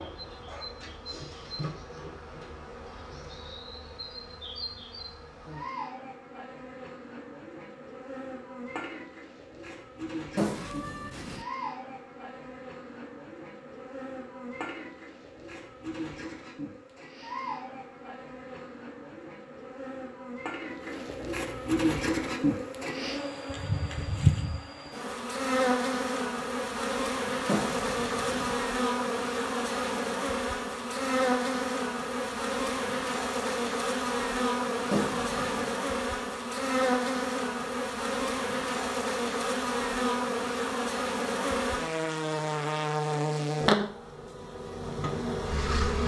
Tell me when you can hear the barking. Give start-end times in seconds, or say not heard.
not heard.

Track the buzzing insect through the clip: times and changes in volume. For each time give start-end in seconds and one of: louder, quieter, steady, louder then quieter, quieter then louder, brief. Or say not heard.
0.0-46.0 louder.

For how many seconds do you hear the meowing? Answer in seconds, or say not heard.
3 s.